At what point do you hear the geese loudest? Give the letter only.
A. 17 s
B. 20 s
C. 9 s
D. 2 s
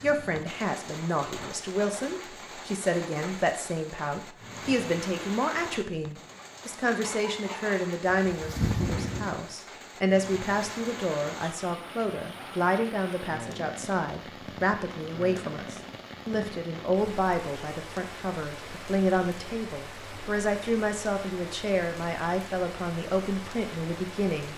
C.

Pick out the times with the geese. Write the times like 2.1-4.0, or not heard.
7.0-9.4.